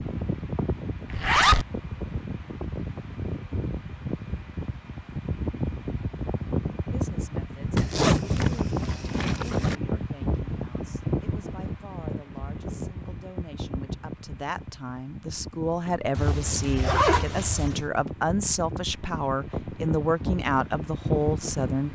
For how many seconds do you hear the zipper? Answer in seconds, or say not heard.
4 s.